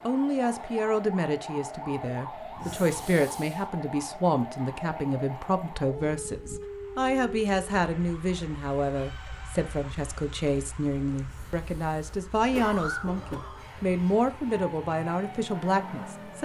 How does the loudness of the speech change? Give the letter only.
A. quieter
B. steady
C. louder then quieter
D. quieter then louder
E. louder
B.